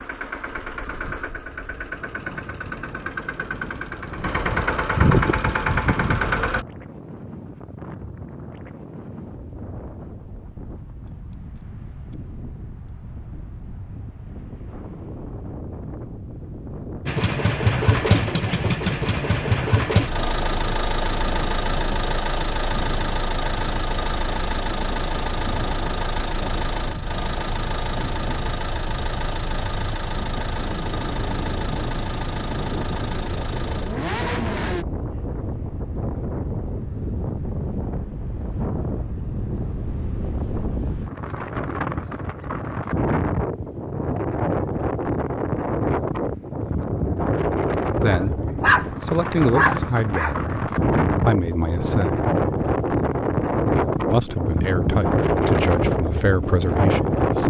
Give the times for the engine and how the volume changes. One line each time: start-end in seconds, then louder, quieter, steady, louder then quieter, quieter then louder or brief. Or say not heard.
0.0-6.7 louder
17.1-34.9 quieter.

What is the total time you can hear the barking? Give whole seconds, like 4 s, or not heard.
2 s.